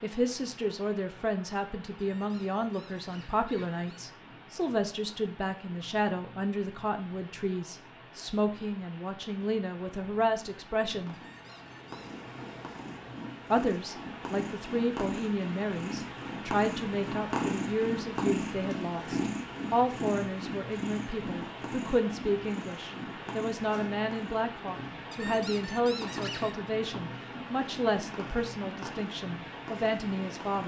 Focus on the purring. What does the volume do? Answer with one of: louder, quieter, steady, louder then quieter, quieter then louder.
louder then quieter.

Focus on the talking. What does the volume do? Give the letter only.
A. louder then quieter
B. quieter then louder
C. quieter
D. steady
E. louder
D.